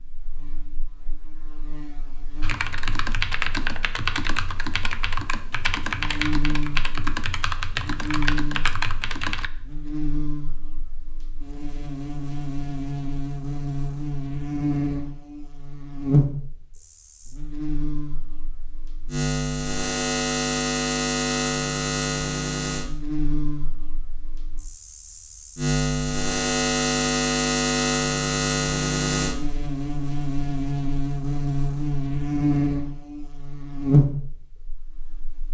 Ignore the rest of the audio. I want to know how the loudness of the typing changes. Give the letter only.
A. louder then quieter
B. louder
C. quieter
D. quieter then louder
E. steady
E.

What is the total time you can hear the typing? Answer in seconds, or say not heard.
7 s.